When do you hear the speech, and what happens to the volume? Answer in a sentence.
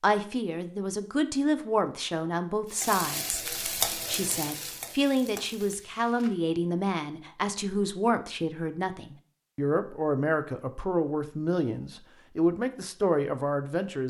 You can hear the speech from 0.0 to 14.0 s, at a steady volume.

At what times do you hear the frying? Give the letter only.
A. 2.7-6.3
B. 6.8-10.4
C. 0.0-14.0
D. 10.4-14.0
A.